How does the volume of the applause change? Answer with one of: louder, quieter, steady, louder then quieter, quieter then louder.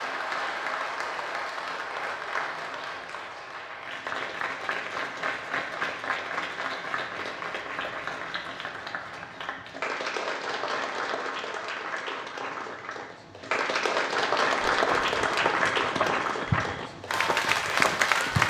louder.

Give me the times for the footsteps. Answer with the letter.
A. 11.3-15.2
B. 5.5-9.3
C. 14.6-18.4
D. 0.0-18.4
C.